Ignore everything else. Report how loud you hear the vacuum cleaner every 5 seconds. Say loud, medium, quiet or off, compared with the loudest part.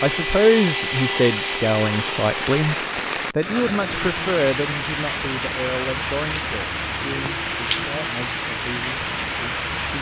loud, off.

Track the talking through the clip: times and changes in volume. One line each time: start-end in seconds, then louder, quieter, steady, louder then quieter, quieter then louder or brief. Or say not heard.
0.0-9.9 quieter.